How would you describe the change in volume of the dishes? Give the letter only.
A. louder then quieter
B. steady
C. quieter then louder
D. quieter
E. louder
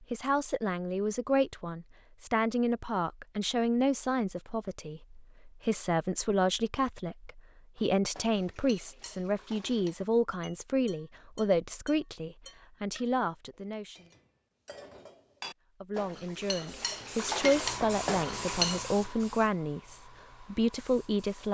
E.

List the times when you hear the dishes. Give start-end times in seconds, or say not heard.
7.8-18.8.